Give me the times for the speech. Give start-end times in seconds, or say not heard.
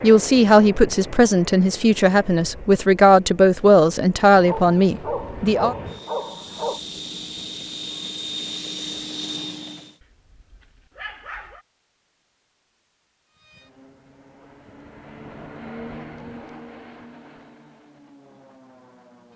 0.0-5.8.